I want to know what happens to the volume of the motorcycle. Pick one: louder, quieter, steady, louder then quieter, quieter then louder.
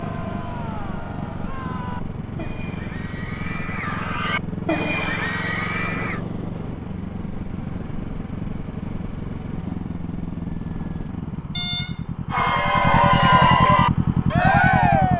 louder.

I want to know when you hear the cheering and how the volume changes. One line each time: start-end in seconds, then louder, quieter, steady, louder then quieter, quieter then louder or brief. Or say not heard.
0.0-6.2 louder
12.3-15.1 brief.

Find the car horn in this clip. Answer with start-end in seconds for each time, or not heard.
11.6-12.0.